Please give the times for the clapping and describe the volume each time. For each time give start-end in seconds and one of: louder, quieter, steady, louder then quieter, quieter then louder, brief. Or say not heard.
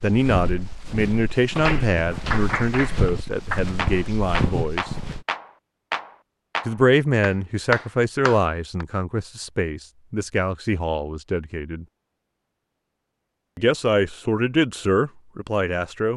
1.6-8.8 steady.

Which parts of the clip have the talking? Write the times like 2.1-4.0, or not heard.
0.0-4.9, 6.7-11.8, 13.6-16.1.